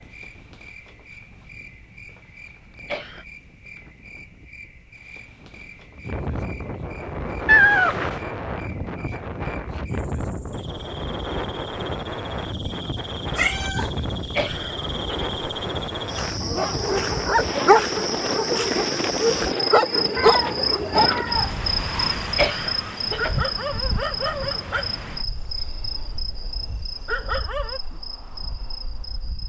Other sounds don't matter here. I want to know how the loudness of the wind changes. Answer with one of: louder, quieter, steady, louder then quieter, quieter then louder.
louder then quieter.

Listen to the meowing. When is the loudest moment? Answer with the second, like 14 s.
8 s.